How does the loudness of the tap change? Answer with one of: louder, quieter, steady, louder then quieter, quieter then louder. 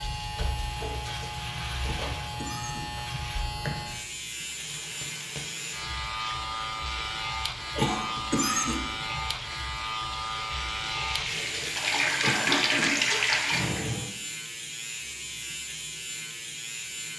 louder.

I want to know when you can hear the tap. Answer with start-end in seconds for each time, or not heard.
4.2-14.1.